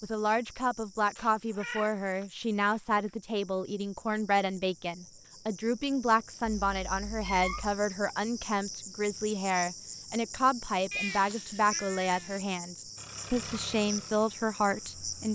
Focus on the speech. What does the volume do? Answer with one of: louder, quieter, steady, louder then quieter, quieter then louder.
steady.